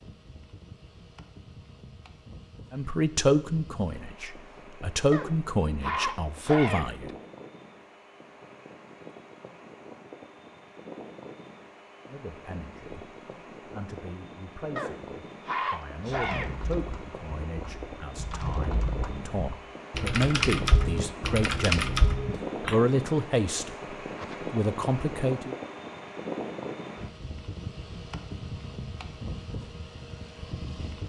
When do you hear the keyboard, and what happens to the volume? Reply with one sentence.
You can hear the keyboard from 16.1 to 22.8 s, getting louder.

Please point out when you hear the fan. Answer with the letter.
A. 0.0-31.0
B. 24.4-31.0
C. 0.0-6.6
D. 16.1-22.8
A.